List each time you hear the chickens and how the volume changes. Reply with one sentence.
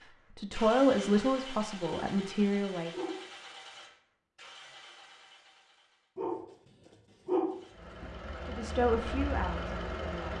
The chickens can't be heard in this clip.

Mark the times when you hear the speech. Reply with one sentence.
The speech can be heard from 0.3 to 2.9 s and from 8.4 to 10.3 s.